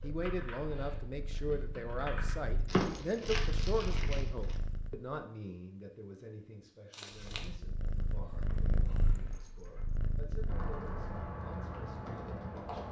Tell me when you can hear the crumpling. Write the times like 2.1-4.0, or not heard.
2.6-4.5, 6.9-7.5.